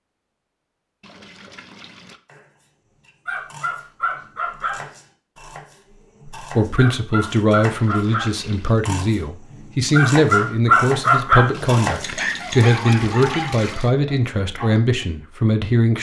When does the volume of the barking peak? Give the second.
11 s.